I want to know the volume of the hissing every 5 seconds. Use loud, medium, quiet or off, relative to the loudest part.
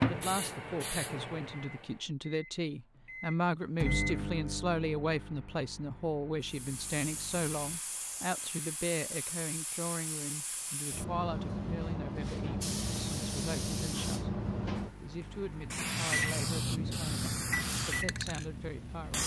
medium, medium, loud, loud.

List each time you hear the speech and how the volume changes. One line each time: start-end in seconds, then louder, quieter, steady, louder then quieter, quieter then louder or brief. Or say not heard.
0.0-19.2 quieter.